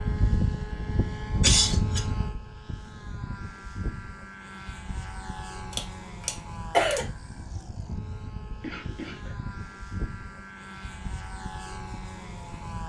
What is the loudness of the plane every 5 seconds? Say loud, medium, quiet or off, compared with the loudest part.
loud, medium, medium.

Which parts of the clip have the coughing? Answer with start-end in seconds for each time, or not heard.
1.4-2.0, 5.7-7.0, 8.6-9.3.